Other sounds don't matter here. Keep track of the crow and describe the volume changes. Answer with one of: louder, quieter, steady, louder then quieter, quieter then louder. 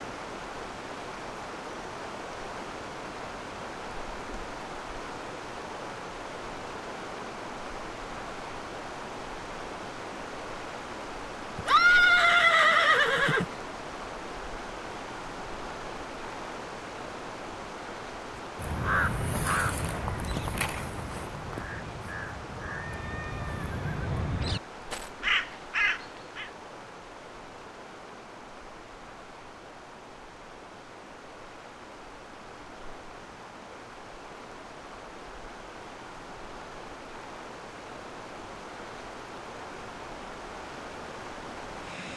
quieter then louder.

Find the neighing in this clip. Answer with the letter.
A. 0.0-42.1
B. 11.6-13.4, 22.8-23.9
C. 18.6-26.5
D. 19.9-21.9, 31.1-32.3
B.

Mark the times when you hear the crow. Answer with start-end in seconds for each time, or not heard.
18.6-26.5.